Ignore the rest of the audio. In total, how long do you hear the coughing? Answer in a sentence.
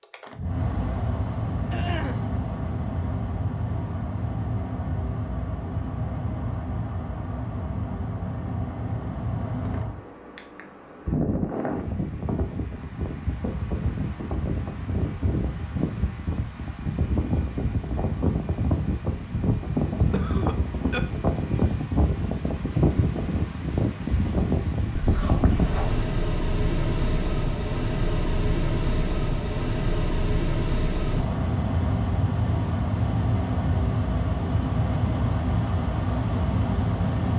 You can hear the coughing for 3 seconds altogether.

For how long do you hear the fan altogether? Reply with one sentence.
You can hear the fan for 37 seconds altogether.